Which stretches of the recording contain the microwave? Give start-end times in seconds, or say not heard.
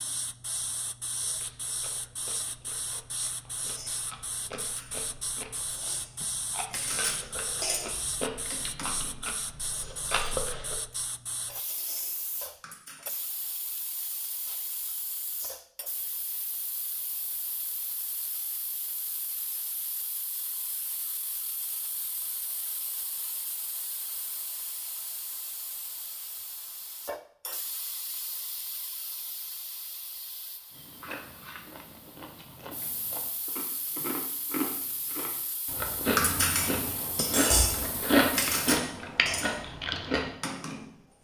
not heard.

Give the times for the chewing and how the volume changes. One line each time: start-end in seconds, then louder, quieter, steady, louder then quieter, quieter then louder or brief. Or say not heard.
1.1-10.8 louder
30.7-40.3 louder.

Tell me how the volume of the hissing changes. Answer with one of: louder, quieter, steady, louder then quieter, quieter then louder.
quieter.